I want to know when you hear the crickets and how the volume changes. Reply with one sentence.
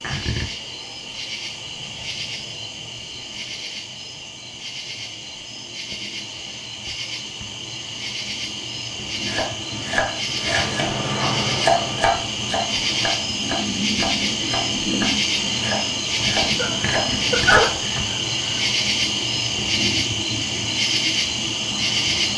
The crickets can be heard from 0.0 to 22.3 s, getting louder.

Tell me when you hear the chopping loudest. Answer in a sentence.
The loudest moment of the chopping is at 12 seconds.